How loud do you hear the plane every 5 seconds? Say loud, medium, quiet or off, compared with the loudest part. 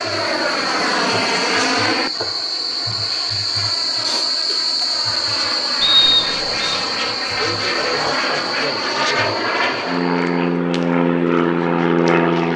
medium, medium, loud.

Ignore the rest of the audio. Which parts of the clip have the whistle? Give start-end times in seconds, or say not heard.
5.8-6.8.